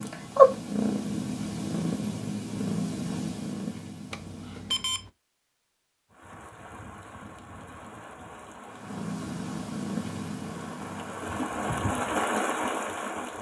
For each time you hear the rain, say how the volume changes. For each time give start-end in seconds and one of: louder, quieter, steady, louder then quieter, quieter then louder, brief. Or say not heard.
6.1-13.3 louder.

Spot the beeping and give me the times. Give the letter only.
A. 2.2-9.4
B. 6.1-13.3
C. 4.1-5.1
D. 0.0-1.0
C.